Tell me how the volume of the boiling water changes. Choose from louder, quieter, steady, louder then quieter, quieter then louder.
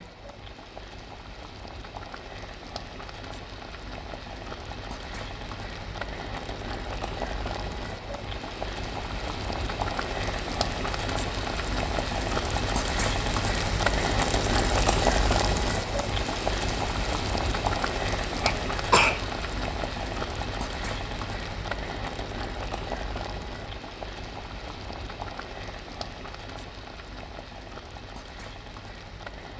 louder then quieter.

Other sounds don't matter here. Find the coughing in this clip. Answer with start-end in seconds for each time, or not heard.
18.4-19.2.